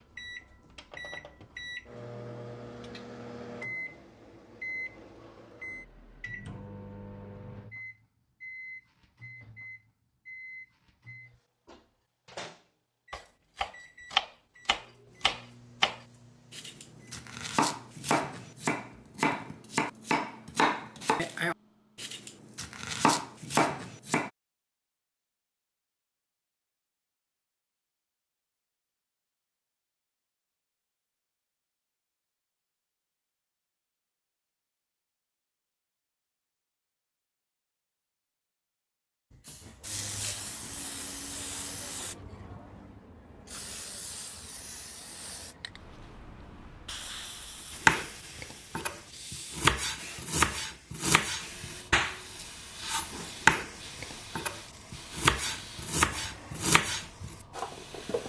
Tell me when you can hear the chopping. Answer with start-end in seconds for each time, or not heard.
13.1-24.3, 47.7-58.2.